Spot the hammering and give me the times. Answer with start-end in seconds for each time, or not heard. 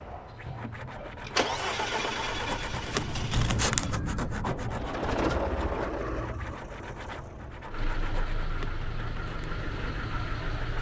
not heard.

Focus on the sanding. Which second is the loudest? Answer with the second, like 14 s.
4 s.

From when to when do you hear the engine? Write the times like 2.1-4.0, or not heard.
0.0-10.7.